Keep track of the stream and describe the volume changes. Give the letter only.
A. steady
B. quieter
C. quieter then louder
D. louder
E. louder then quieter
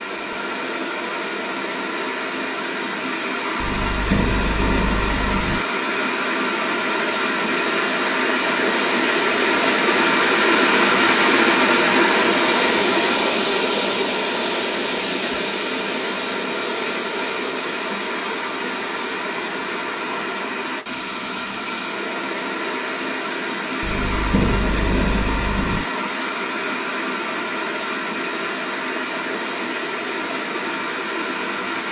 E.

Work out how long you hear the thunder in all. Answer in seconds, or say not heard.
4 s.